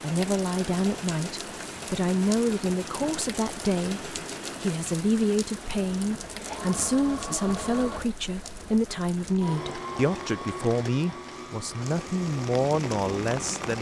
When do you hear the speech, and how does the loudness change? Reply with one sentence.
The speech can be heard from 0.0 to 13.7 s, at a steady volume.